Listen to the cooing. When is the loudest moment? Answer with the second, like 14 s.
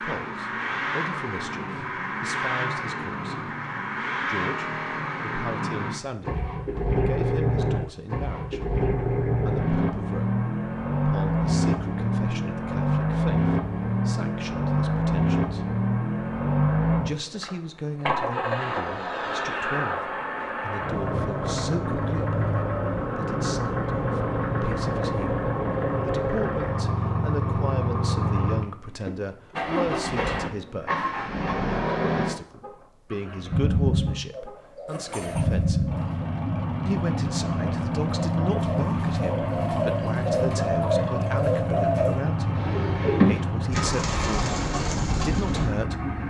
43 s.